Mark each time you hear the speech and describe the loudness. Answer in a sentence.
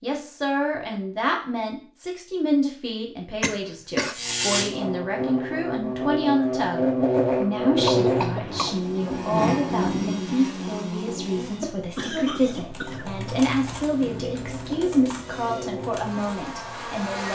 You can hear the speech from 0.0 to 17.3 s, at a steady volume.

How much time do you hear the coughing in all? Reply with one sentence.
The coughing can be heard for 3 seconds in total.